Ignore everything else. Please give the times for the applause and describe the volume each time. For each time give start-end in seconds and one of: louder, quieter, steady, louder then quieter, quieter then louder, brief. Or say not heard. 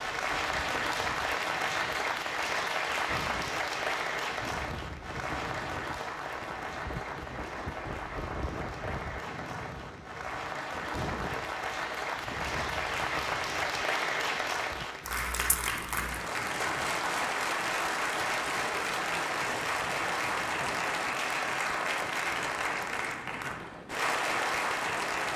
0.0-25.3 quieter then louder.